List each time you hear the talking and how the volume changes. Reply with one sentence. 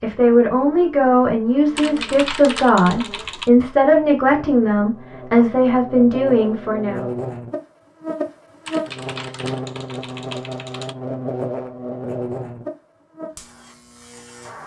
You can hear the talking from 0.0 to 7.0 s, at a steady volume.